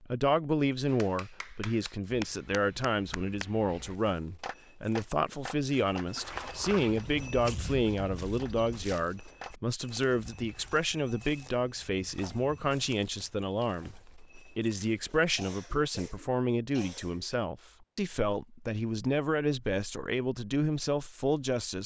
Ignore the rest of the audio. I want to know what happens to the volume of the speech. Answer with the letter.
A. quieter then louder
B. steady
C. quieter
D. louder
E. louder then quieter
B.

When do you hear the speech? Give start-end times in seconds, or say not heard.
0.0-21.8.